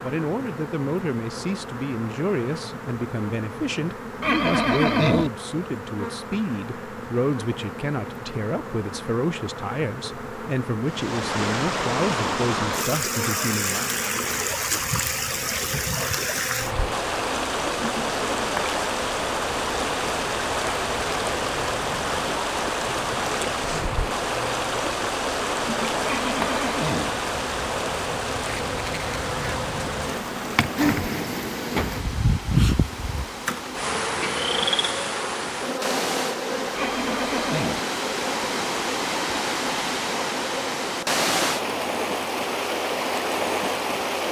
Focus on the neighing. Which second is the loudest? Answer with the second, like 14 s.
5 s.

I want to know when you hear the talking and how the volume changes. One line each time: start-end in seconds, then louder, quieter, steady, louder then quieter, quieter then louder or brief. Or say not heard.
0.0-13.9 steady.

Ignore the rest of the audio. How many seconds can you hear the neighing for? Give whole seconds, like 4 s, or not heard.
3 s.